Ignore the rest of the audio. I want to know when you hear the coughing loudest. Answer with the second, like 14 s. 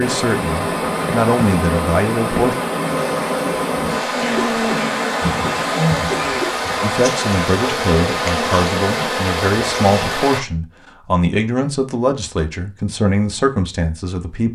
6 s.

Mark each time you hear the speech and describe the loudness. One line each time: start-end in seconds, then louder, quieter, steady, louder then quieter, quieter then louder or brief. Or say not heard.
0.0-2.5 brief
6.8-14.4 steady.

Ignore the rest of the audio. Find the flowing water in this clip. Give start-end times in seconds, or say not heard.
0.0-10.4.